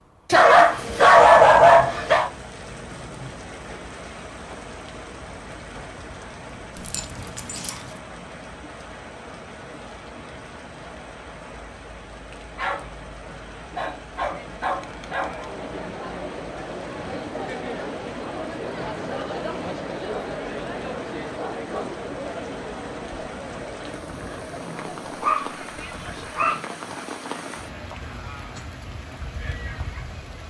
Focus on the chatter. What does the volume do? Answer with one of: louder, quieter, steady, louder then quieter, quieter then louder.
quieter.